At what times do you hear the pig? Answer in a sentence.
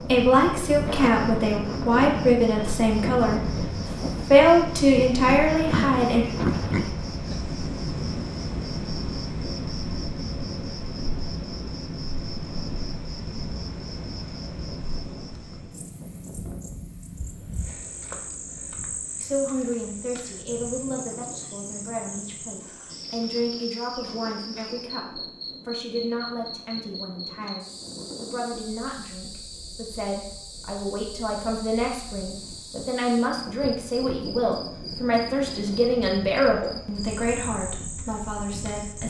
You can hear the pig from 5.2 to 7.0 s.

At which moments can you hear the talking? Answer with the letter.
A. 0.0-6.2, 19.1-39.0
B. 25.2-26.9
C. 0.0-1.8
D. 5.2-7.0
A.